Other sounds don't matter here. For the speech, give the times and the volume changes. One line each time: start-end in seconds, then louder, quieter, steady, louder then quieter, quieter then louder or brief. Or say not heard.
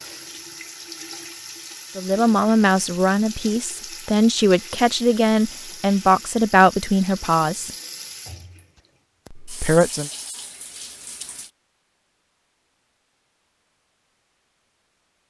1.9-7.7 steady
9.4-10.1 brief.